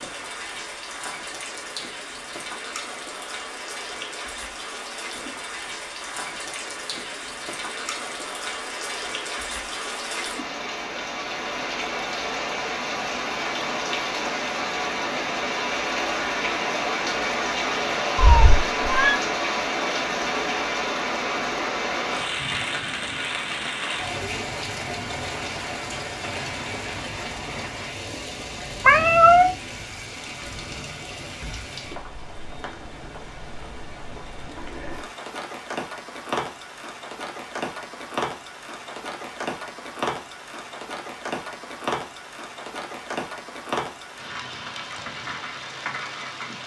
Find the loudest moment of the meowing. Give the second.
29 s.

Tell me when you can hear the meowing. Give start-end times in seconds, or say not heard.
18.1-19.2, 28.8-29.5.